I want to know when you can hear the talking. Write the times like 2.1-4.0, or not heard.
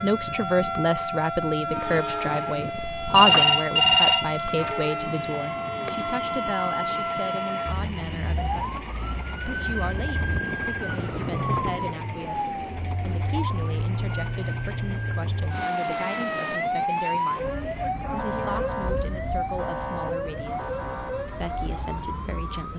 0.0-22.7.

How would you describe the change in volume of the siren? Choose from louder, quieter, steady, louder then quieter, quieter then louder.
steady.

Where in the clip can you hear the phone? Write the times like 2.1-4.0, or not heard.
2.8-4.7.